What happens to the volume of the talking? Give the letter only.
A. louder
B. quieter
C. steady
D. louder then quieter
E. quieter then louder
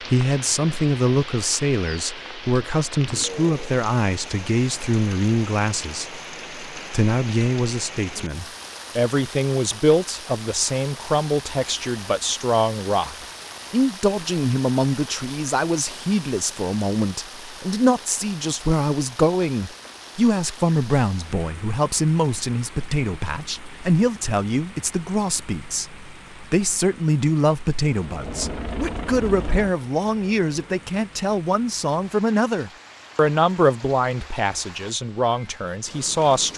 C.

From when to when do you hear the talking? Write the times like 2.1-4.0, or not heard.
0.0-36.5.